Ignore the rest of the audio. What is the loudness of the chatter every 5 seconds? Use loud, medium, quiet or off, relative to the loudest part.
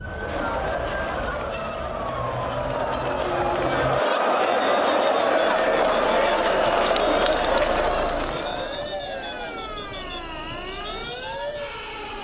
loud, loud, off.